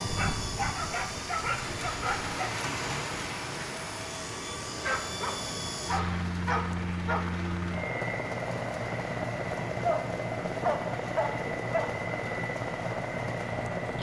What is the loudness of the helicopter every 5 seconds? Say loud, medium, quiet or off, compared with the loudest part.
medium, loud, loud.